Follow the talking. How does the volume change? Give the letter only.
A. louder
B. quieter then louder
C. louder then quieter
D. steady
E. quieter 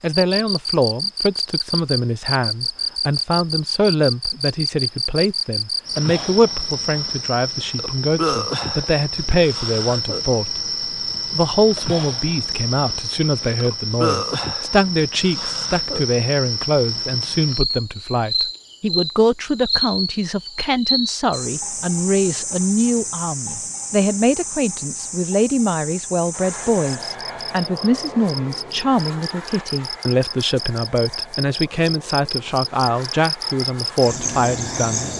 D.